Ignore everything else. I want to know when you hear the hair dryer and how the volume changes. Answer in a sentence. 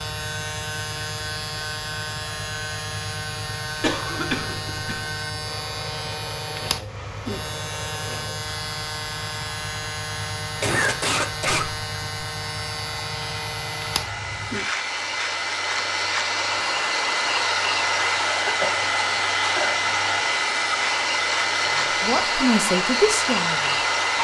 The hair dryer can be heard from 0.0 to 24.1 s, getting louder.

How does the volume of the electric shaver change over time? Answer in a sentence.
The loudness of the electric shaver stays about the same.